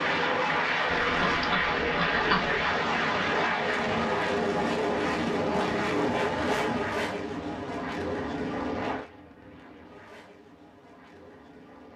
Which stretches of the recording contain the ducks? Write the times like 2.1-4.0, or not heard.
0.8-2.6.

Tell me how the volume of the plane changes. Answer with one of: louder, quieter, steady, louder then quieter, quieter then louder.
quieter.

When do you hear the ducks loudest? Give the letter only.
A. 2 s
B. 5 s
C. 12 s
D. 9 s
A.